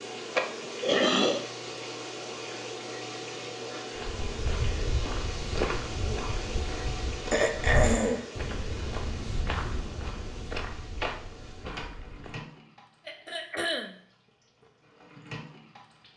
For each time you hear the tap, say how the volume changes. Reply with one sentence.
You can hear the tap from 0.0 to 16.1 s, getting quieter.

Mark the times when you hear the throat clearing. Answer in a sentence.
The throat clearing can be heard from 0.3 to 1.4 s, from 7.3 to 8.2 s and from 13.1 to 14.1 s.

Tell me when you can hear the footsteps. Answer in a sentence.
You can hear the footsteps from 4.0 to 12.4 s.